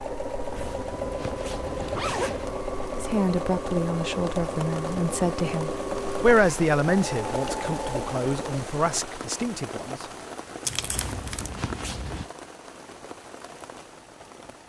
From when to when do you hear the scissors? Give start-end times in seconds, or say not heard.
not heard.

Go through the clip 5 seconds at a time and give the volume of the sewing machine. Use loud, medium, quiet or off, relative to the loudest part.
loud, loud, off.